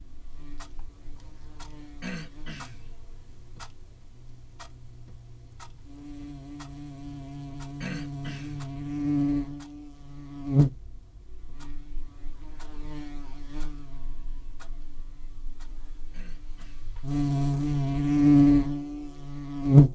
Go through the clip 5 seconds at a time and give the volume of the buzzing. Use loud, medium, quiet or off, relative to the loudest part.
quiet, medium, medium, loud.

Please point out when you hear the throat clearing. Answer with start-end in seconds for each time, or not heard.
2.0-2.9, 7.8-8.7, 16.1-16.9.